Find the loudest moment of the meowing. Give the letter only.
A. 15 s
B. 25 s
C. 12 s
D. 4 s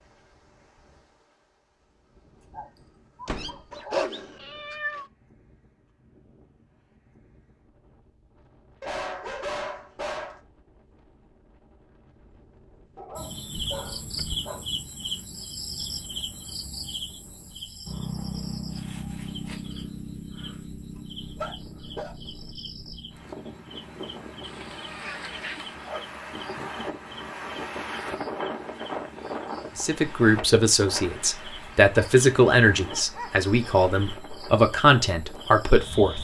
D.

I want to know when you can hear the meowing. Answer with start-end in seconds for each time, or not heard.
3.2-5.0, 13.5-14.5, 24.4-25.8.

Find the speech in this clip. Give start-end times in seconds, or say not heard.
29.8-36.2.